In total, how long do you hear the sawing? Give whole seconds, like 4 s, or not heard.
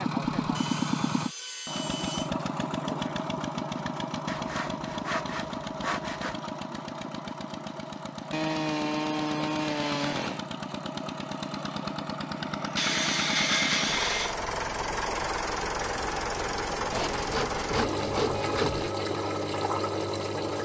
10 s.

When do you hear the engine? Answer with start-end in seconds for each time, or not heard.
0.0-20.6.